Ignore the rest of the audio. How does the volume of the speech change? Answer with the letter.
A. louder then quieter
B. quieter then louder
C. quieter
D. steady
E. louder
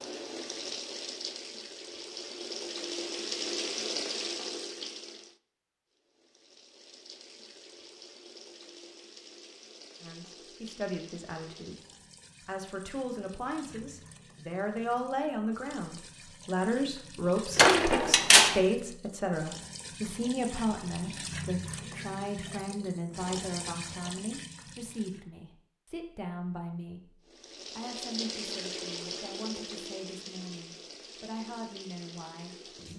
A.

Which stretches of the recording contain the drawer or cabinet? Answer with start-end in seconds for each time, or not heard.
17.6-18.6.